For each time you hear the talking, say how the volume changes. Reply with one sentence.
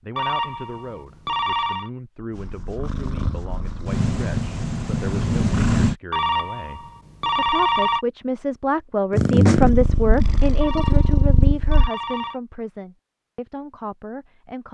You can hear the talking from 0.0 to 14.6 s, getting louder then quieter.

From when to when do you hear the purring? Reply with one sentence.
You can hear the purring from 2.3 to 6.0 s and from 9.1 to 11.9 s.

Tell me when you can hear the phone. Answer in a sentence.
The phone can be heard from 0.1 to 1.9 s, from 6.1 to 8.1 s and from 10.6 to 12.4 s.